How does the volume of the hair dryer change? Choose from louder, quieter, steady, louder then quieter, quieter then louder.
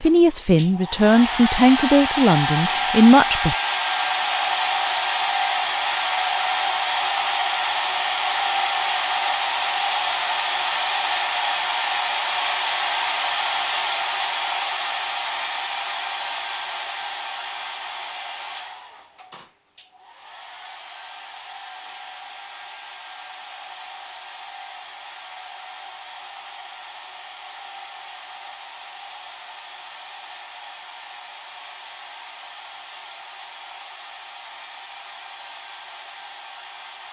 quieter.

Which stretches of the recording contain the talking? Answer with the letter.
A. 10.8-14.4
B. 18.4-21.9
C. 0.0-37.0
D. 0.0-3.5
D.